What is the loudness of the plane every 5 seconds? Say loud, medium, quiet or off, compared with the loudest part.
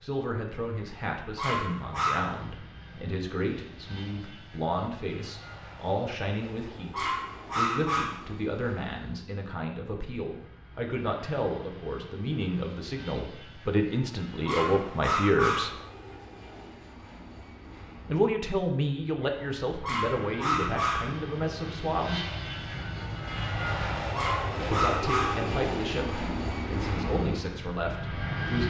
quiet, quiet, quiet, quiet, loud, loud.